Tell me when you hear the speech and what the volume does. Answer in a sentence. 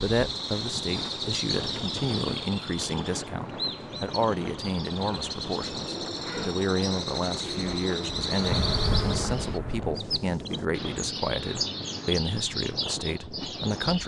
The speech can be heard from 0.0 to 14.0 s, at a steady volume.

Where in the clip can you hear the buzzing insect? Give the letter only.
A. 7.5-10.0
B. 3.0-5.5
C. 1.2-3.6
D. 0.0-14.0
A.